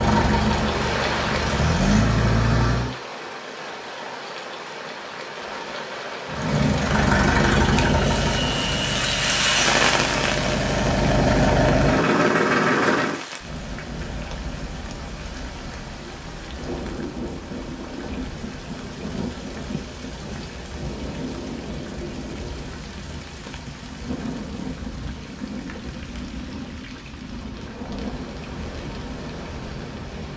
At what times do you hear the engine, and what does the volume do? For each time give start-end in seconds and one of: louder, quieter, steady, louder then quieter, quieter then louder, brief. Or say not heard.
0.0-3.0 brief
6.2-13.2 quieter then louder.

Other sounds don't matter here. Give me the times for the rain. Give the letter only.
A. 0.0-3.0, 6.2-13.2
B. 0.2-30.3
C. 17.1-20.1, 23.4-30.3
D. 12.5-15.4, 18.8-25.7
B.